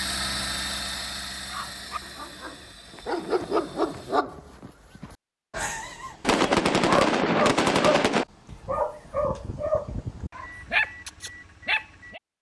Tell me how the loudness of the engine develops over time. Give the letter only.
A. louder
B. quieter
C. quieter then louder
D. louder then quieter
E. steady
B.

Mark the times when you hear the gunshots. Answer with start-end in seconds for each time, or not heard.
6.2-8.2.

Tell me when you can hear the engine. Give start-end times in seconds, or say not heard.
0.0-4.2.